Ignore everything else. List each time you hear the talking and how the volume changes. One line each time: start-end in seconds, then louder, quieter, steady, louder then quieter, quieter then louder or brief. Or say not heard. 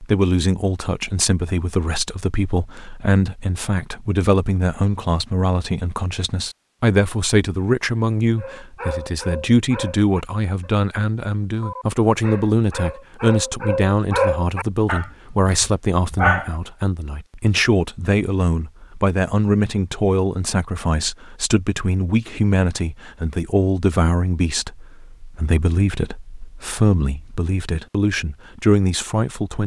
0.0-29.6 steady.